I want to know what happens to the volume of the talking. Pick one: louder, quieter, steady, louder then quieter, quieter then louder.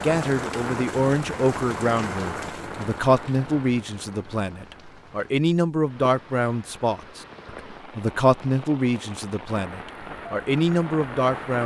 steady.